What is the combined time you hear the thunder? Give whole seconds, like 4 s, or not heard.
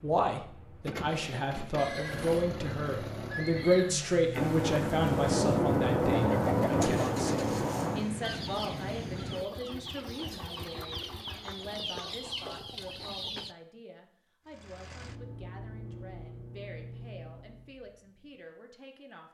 4 s.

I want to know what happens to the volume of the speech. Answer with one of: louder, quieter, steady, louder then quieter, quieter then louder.
quieter.